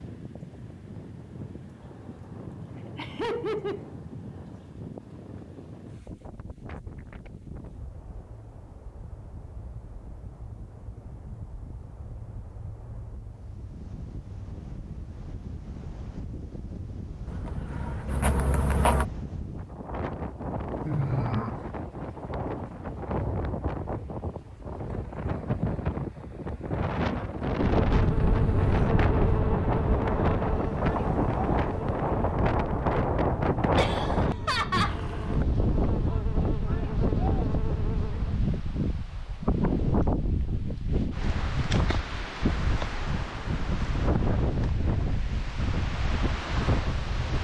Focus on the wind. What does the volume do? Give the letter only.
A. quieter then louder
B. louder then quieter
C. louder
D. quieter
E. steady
C.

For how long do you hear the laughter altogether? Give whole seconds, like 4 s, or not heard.
3 s.